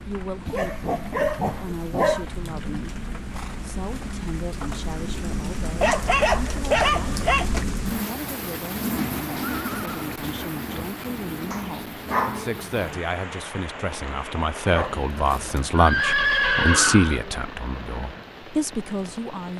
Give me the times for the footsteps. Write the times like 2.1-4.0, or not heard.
not heard.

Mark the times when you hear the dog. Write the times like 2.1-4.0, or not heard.
0.5-2.2, 5.8-7.5, 11.5-12.9, 14.7-15.6.